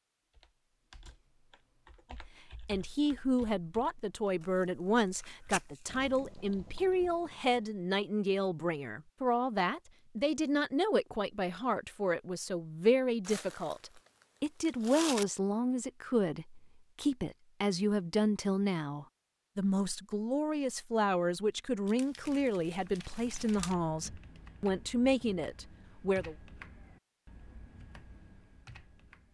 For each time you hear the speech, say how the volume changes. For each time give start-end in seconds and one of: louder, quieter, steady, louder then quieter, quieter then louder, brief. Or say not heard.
2.1-26.4 steady.